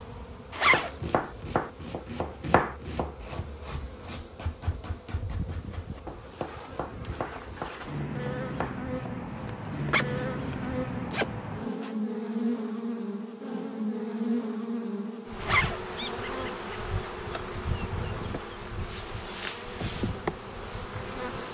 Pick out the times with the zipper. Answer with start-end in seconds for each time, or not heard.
0.5-0.9, 9.4-11.9, 15.4-15.8.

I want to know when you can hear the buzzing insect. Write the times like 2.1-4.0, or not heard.
0.0-21.4.